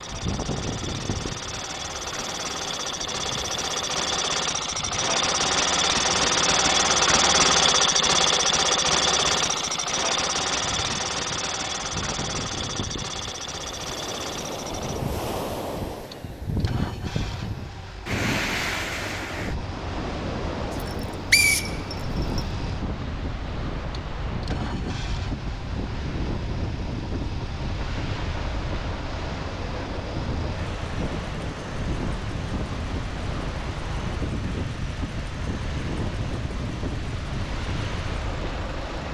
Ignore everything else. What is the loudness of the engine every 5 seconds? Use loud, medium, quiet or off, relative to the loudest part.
medium, loud, medium, quiet, quiet, quiet, quiet, quiet.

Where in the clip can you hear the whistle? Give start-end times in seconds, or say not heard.
20.8-22.4.